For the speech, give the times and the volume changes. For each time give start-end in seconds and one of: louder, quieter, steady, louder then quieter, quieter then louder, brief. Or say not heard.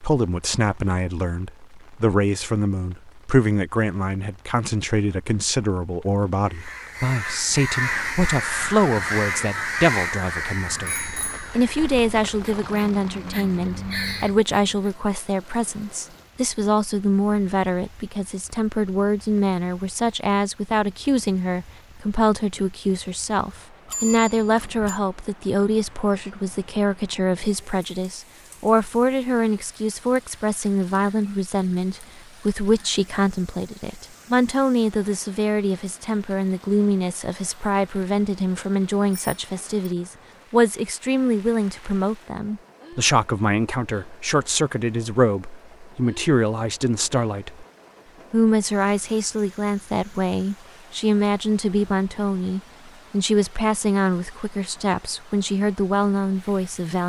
0.0-47.6 steady
48.3-57.0 steady.